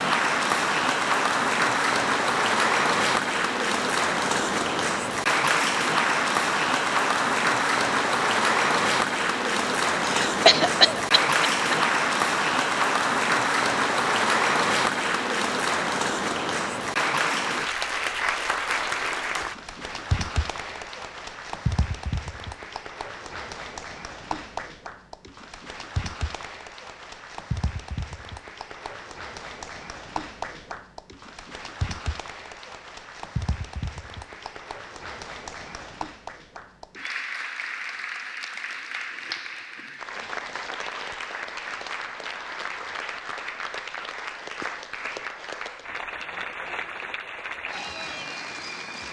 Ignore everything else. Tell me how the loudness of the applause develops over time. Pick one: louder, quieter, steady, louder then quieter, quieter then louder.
quieter.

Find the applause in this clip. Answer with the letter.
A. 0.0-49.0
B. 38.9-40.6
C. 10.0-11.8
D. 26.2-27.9
A.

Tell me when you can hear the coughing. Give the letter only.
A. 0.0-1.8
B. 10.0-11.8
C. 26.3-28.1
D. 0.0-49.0
B.